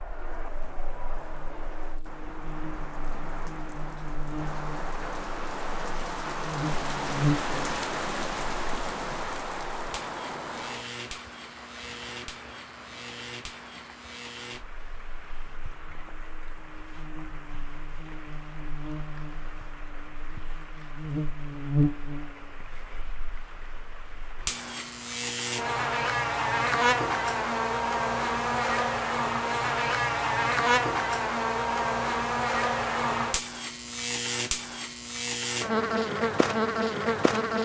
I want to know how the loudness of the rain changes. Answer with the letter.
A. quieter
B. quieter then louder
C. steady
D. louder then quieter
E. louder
D.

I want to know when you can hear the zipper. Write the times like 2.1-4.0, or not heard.
not heard.